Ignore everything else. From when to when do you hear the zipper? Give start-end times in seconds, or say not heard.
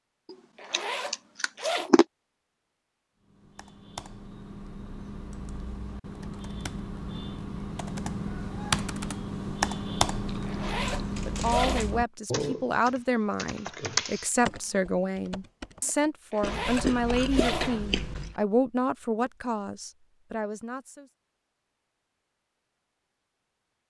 0.6-1.9, 10.4-11.8, 16.3-17.8.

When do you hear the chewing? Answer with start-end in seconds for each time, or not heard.
0.3-2.0, 10.2-11.9, 16.4-18.4.